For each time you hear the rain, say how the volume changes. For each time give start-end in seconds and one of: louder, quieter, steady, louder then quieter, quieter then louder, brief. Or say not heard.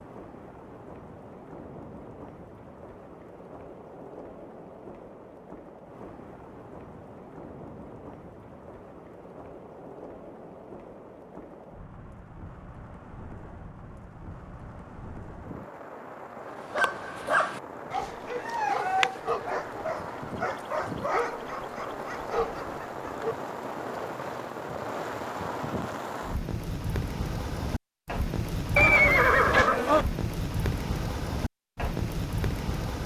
0.0-33.0 louder.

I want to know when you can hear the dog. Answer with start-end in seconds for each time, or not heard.
16.7-23.4.